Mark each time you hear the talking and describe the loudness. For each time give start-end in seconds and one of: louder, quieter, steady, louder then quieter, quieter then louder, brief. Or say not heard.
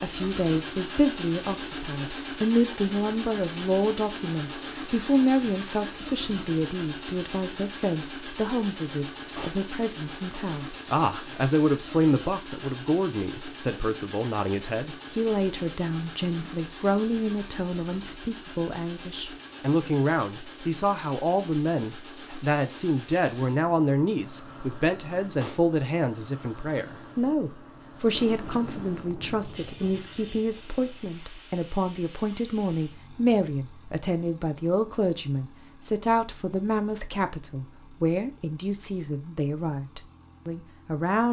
0.0-41.2 steady.